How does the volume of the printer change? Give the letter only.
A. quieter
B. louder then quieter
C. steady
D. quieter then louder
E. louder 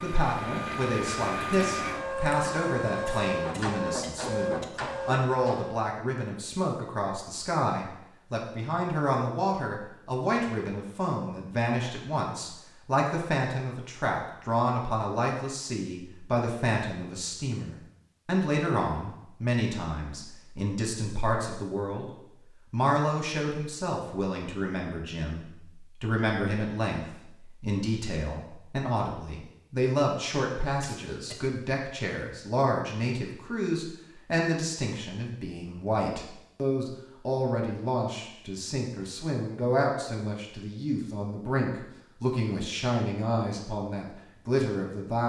C.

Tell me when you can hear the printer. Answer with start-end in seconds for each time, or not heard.
0.0-5.8.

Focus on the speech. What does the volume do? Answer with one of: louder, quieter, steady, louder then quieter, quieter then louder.
steady.